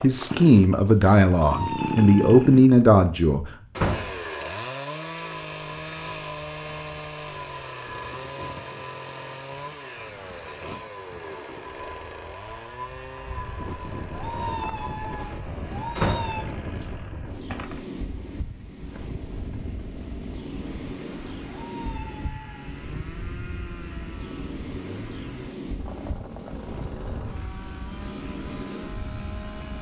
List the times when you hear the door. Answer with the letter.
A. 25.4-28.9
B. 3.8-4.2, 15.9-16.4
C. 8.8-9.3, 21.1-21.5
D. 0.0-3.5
B.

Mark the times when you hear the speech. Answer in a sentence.
The speech can be heard from 0.0 to 3.5 s.